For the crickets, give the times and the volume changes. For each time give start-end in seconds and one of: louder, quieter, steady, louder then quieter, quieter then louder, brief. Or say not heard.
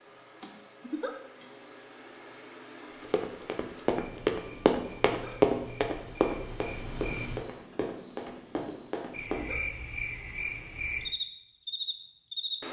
0.0-12.6 louder.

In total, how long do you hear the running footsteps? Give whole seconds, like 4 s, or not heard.
6 s.